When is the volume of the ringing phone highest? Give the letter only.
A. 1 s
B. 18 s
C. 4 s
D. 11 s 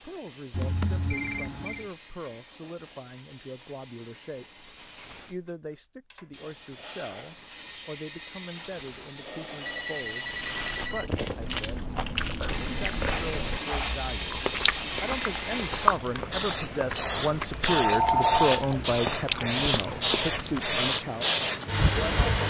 B.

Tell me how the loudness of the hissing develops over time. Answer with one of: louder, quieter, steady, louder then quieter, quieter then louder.
louder.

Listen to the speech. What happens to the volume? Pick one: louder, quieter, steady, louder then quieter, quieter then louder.
louder.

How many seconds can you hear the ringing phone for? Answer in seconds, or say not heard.
4 s.